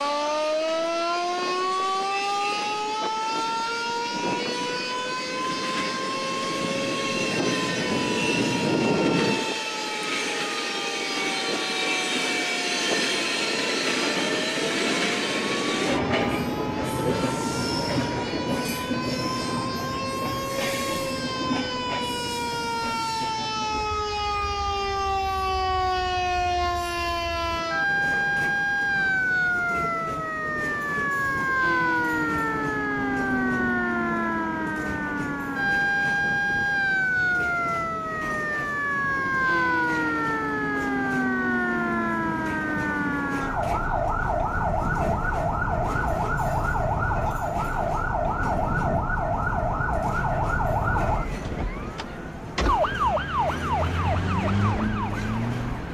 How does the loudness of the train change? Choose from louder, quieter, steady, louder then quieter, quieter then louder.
quieter.